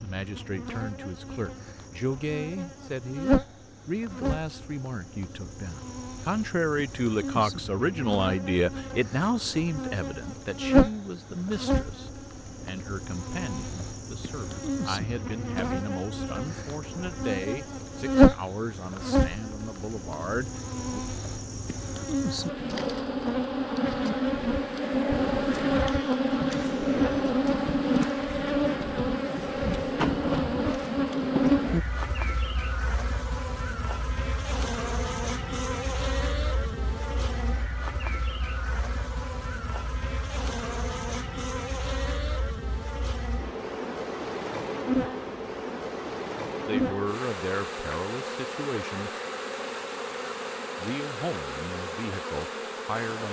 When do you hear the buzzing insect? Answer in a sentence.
You can hear the buzzing insect from 0.0 to 53.2 s.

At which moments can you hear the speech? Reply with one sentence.
The speech can be heard from 0.0 to 21.0 s, from 46.6 to 49.1 s and from 50.8 to 53.2 s.